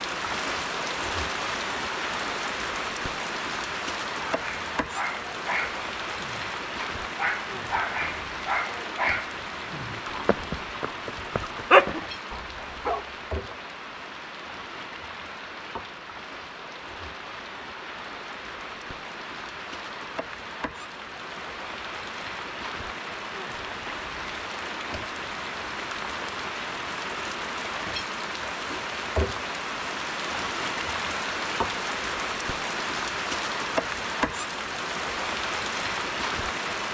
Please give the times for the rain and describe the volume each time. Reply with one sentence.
You can hear the rain from 0.0 to 36.8 s, getting quieter then louder.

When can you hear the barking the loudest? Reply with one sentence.
The volume of the barking peaks at 12 seconds.